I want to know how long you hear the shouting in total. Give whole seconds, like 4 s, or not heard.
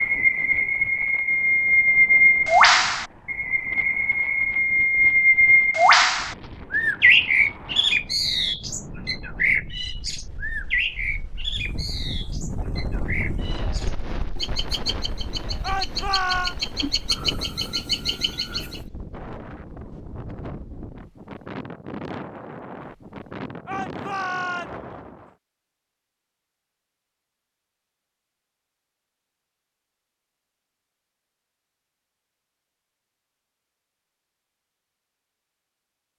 2 s.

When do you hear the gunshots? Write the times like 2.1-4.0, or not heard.
not heard.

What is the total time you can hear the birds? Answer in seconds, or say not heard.
19 s.